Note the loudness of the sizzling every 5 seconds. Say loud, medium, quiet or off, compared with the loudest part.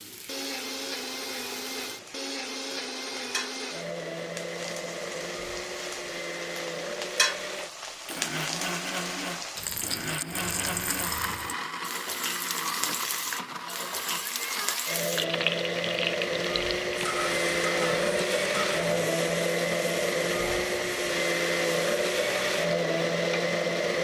medium, loud, loud, loud, medium.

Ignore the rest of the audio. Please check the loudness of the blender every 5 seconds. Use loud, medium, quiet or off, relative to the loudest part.
medium, medium, medium, loud, loud.